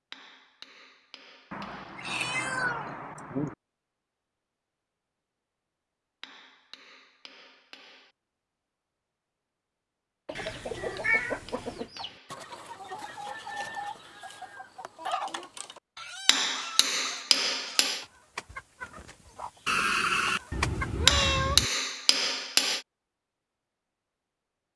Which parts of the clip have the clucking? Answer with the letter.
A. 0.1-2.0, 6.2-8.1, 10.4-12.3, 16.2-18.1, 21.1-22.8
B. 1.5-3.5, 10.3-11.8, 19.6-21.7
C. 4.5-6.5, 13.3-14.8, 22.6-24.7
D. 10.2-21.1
D.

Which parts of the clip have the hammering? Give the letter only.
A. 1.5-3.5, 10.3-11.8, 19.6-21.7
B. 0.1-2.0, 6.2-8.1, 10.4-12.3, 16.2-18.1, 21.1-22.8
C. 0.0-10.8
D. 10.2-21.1
B.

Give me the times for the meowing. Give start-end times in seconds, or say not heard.
1.5-3.5, 10.3-11.8, 19.6-21.7.